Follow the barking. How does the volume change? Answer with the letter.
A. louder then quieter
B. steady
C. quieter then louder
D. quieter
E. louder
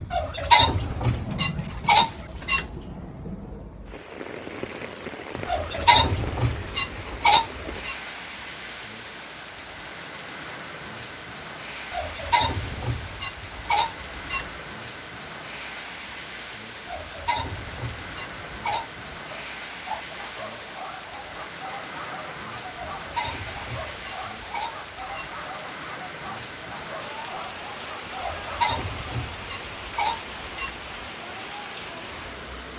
B.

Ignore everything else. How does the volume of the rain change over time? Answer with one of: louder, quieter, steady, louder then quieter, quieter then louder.
steady.